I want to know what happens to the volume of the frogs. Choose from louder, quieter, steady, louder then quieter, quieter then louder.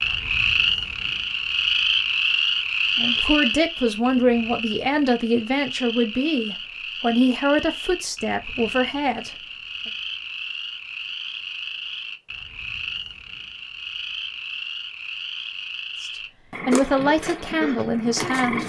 quieter.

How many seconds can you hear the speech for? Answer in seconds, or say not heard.
9 s.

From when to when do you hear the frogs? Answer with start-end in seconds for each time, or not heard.
0.0-18.6.